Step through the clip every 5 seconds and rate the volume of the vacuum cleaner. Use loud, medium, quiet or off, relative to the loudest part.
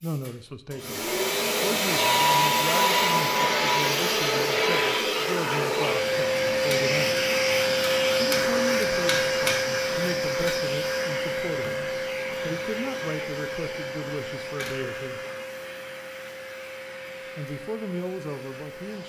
loud, loud, medium, quiet.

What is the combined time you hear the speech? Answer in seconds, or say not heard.
16 s.